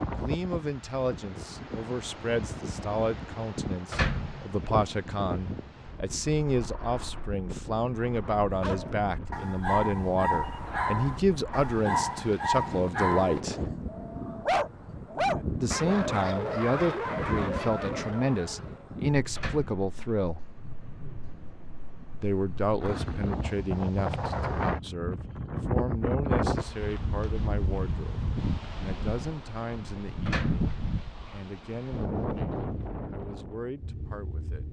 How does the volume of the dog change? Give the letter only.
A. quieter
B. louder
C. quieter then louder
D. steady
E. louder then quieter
D.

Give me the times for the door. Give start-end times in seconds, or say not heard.
3.9-4.6, 19.4-20.1, 30.2-30.7.